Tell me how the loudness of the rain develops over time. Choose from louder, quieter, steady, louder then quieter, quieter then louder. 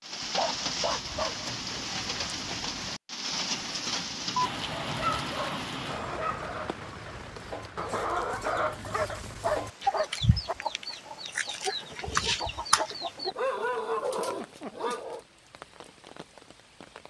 quieter.